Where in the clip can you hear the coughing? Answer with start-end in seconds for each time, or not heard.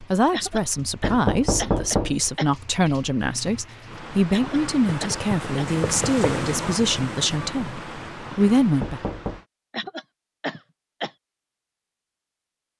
0.3-2.5, 4.3-5.8, 9.7-11.1.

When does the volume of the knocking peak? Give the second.
2 s.